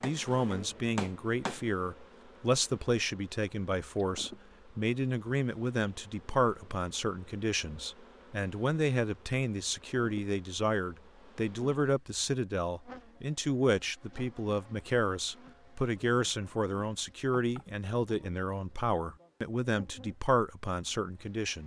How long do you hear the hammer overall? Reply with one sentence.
You can hear the hammer for 2 seconds altogether.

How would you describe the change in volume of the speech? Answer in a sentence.
The volume of the speech stays about the same.